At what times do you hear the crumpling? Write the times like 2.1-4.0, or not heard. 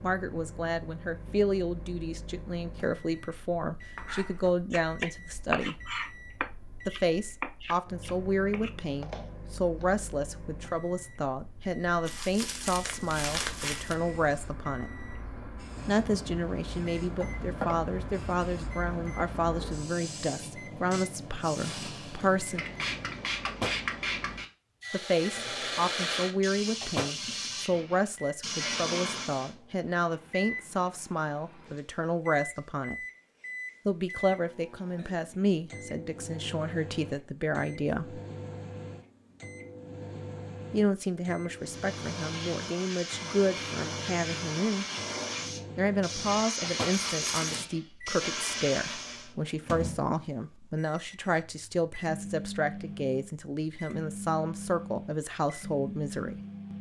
12.1-13.9, 46.9-47.6.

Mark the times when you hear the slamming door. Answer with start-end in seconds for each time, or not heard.
not heard.